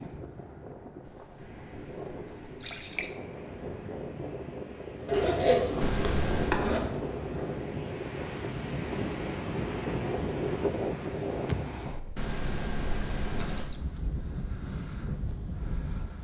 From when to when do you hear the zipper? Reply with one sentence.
The zipper can be heard from 5.0 to 6.9 s.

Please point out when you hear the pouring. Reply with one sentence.
You can hear the pouring from 1.1 to 3.1 s, from 5.8 to 6.6 s and from 12.2 to 13.8 s.